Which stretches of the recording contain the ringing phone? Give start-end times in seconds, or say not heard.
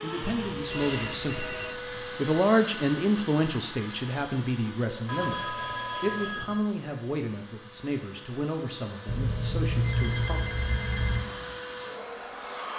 0.2-1.9, 5.0-6.7, 9.1-11.2.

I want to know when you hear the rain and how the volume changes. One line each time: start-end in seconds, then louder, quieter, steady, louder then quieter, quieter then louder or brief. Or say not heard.
not heard.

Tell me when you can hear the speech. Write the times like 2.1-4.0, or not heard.
0.0-10.4.